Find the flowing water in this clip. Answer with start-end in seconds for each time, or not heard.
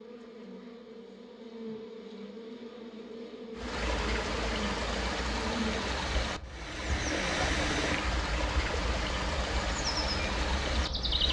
3.5-11.2.